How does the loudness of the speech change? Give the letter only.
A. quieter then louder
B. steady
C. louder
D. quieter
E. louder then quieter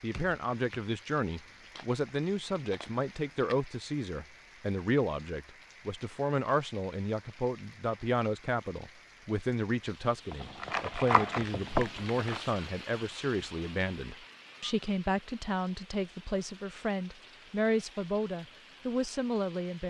B.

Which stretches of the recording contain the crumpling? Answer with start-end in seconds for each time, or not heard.
1.3-3.6, 10.3-12.4.